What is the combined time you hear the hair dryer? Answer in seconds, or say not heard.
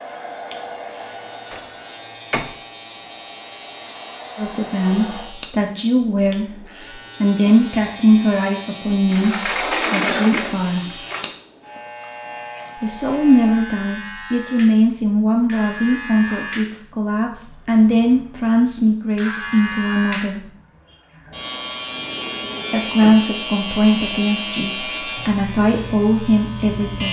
5 s.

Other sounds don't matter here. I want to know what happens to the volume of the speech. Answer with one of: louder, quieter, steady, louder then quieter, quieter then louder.
steady.